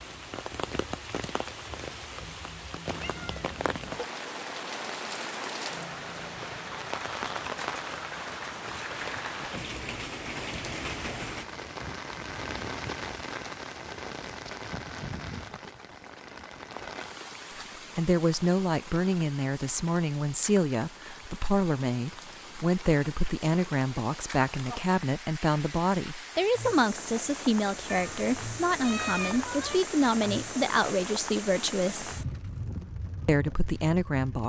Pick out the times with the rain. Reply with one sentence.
You can hear the rain from 0.0 to 34.4 s.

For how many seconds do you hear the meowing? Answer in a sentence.
You can hear the meowing for 3 seconds altogether.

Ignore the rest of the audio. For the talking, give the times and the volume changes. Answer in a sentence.
The talking can be heard from 17.9 to 32.1 s, at a steady volume; and briefly from 33.2 to 34.4 s.